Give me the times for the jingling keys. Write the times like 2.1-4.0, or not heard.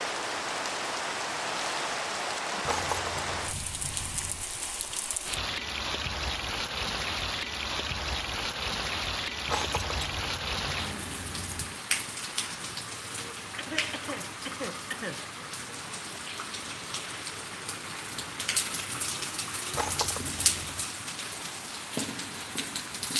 2.6-4.5, 9.4-11.8, 19.7-20.9.